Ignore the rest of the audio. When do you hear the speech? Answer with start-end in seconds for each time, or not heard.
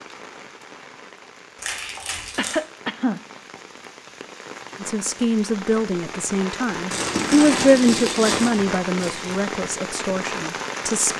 4.8-11.1.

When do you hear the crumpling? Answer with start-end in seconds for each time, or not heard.
1.6-2.6, 6.9-9.4.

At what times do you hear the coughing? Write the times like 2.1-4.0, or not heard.
2.4-3.2.